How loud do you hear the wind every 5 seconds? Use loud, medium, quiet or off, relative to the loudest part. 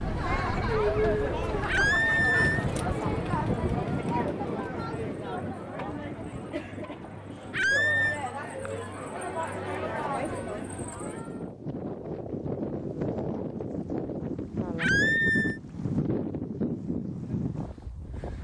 loud, medium, loud, loud.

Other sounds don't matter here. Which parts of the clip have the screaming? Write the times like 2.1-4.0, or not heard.
1.6-2.6, 7.5-8.2, 14.8-15.6.